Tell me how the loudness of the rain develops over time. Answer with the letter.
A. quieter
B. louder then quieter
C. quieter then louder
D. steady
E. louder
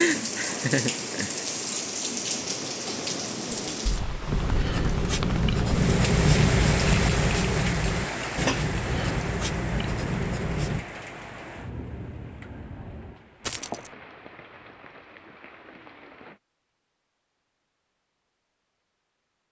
A.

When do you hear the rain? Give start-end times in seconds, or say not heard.
0.0-16.4.